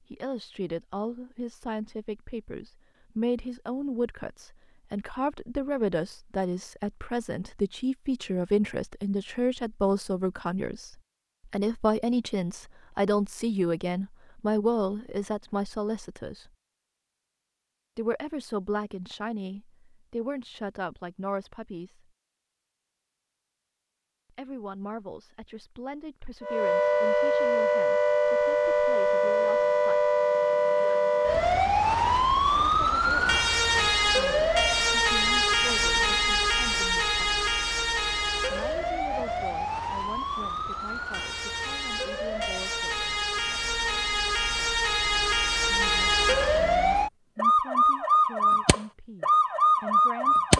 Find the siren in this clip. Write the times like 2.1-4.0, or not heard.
26.4-50.5.